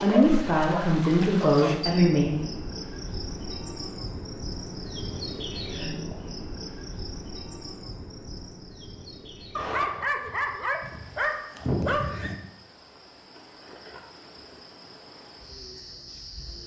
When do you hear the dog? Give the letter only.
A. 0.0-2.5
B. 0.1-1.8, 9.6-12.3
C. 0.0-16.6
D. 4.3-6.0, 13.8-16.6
B.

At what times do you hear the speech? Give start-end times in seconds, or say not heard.
0.0-2.5.